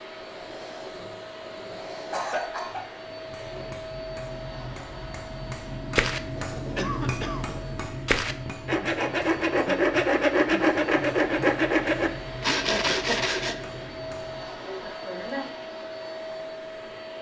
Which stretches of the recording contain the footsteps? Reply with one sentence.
You can't hear the footsteps here.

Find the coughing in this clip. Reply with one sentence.
You can hear the coughing from 2.1 to 2.9 s, from 6.8 to 7.5 s and from 14.7 to 15.6 s.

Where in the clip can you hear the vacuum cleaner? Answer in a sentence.
You can hear the vacuum cleaner from 0.0 to 17.1 s.